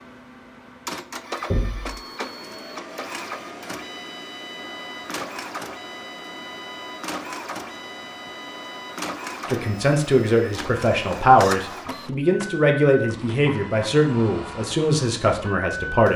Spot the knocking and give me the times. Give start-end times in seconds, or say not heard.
1.5-2.0.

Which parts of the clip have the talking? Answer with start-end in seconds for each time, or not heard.
9.4-16.1.